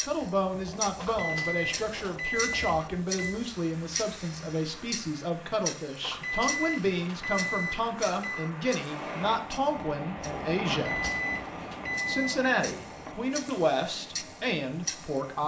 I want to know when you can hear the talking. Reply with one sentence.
The talking can be heard from 0.1 to 11.1 s and from 12.1 to 15.4 s.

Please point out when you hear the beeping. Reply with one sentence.
You can hear the beeping from 0.9 to 3.4 s, from 6.0 to 8.5 s and from 10.7 to 12.3 s.